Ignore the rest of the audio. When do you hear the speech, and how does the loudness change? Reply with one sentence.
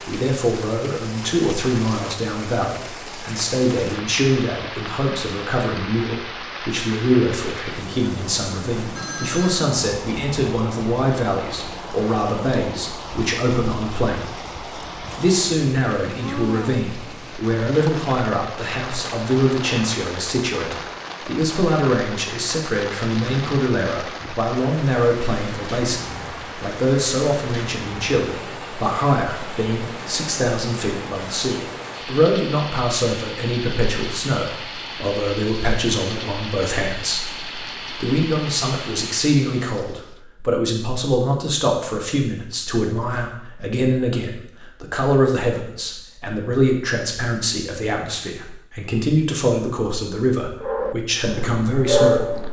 You can hear the speech from 0.1 to 14.4 s, at a steady volume; and from 15.2 to 52.4 s, at a steady volume.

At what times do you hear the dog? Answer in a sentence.
The dog can be heard from 50.6 to 52.4 s.